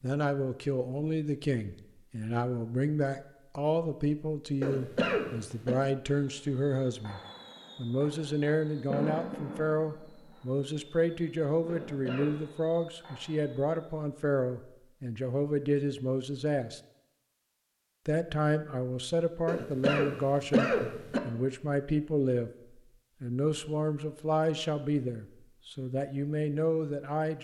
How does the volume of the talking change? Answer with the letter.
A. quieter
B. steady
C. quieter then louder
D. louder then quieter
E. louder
B.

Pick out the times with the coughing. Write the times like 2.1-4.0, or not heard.
4.6-5.8, 11.7-12.3, 19.4-21.2.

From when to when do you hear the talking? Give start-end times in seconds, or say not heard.
0.0-16.8, 18.1-22.5, 23.2-27.3.